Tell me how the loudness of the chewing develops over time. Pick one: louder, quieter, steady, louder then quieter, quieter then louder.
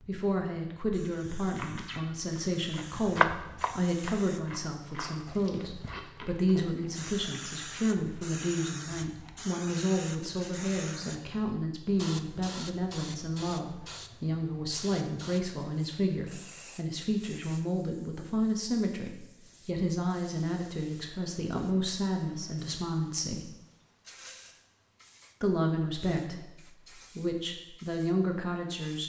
louder then quieter.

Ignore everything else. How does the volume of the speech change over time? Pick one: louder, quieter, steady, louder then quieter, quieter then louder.
steady.